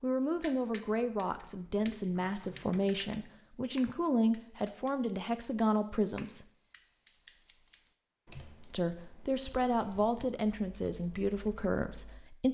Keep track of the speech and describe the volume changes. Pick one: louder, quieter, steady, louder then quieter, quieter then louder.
steady.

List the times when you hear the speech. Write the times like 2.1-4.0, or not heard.
0.0-6.5, 8.7-12.4.